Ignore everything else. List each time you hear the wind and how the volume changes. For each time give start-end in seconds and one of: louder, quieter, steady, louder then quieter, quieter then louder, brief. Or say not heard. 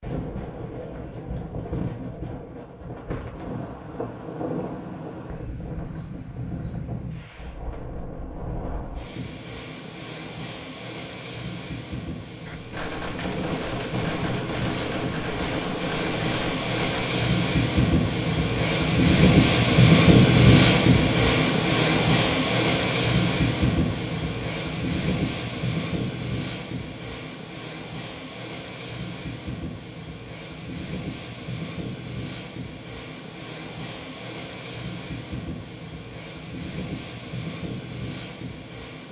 0.0-39.0 louder then quieter.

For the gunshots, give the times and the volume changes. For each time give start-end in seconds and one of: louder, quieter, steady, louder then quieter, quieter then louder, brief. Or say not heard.
12.4-17.1 steady.